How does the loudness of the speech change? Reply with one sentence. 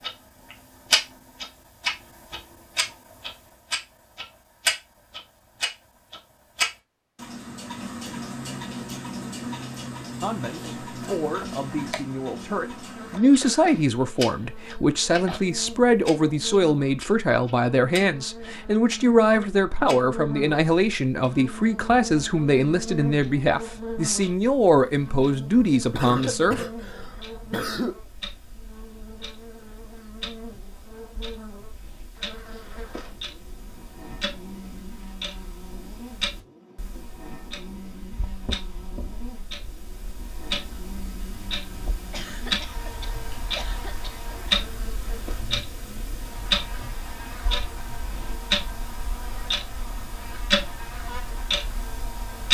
The loudness of the speech stays about the same.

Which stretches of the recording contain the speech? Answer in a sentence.
You can hear the speech from 10.2 to 26.6 s.